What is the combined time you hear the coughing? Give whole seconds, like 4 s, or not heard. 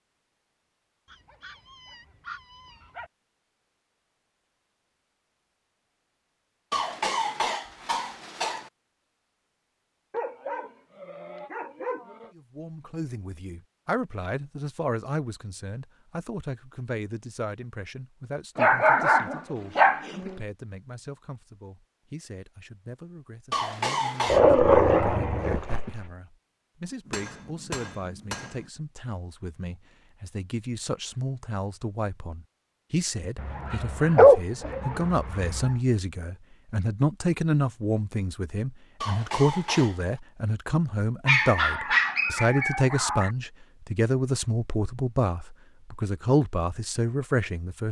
4 s.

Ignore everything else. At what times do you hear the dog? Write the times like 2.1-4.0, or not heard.
1.1-3.1, 10.1-12.3, 18.6-20.4, 24.2-26.0, 33.4-35.8, 41.2-43.3.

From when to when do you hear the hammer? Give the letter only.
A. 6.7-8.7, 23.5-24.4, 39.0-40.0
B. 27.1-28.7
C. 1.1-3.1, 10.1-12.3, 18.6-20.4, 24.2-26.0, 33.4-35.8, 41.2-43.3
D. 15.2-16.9
B.